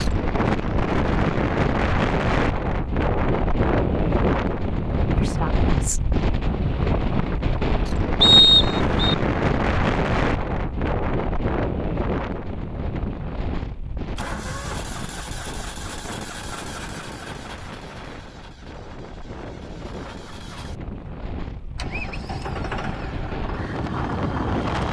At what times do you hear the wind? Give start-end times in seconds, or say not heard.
0.0-24.8.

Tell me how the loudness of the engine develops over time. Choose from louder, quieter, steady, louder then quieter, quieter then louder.
quieter then louder.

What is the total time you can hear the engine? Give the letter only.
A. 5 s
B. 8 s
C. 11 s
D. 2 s
C.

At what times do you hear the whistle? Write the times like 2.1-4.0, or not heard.
8.2-9.2.